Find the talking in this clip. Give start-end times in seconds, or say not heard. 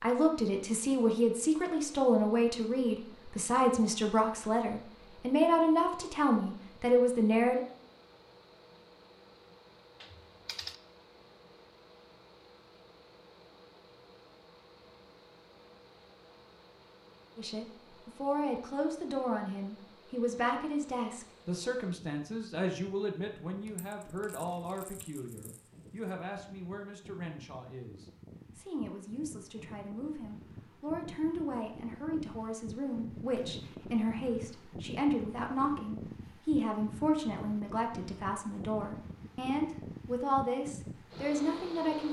0.0-7.6, 17.4-42.0.